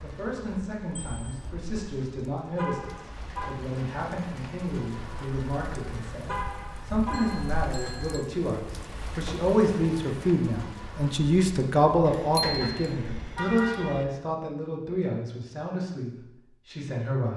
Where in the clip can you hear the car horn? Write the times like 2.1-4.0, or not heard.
2.5-3.5, 6.2-7.4, 12.1-14.1.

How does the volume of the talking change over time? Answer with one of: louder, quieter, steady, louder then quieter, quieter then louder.
louder then quieter.